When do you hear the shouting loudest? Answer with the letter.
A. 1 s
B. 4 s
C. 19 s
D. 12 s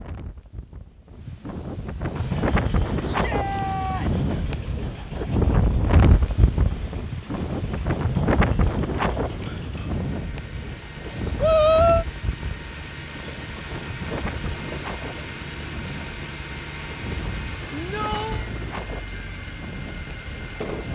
D.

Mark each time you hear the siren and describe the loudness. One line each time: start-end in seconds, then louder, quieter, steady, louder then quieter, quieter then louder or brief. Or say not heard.
not heard.